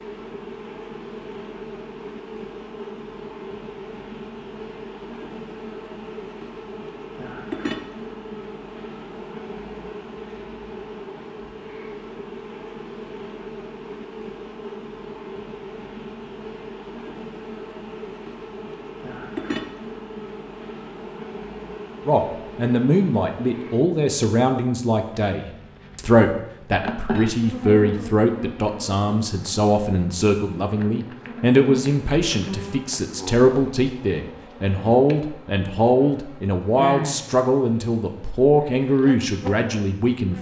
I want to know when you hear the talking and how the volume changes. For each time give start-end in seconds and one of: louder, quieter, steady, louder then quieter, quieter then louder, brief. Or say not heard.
22.1-40.3 steady.